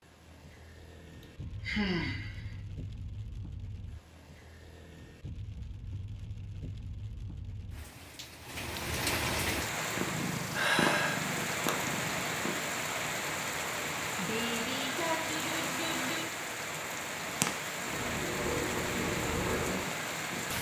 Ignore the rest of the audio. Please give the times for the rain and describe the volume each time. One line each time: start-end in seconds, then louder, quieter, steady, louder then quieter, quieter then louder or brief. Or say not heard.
0.0-20.5 louder.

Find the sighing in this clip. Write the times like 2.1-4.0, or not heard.
1.2-2.5, 10.6-11.2, 14.2-16.2.